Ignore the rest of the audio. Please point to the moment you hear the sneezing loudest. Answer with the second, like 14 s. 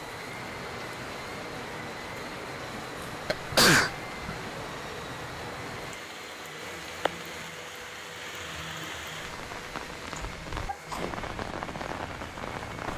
4 s.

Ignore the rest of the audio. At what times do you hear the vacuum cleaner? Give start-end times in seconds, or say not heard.
0.0-12.9.